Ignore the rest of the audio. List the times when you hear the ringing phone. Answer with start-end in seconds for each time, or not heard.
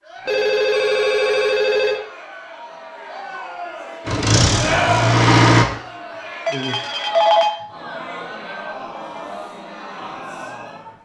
0.2-2.0, 6.5-7.5.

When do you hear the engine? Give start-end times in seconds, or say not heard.
4.0-5.7.